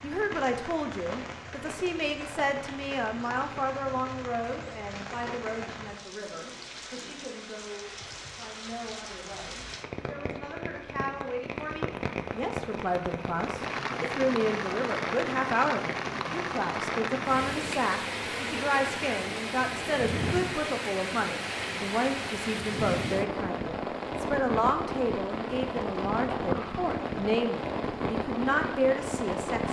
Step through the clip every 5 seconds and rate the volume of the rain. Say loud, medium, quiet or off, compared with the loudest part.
medium, medium, loud, loud, loud, loud.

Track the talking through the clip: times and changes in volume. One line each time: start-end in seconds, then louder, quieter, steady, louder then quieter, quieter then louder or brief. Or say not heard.
0.0-29.6 quieter then louder.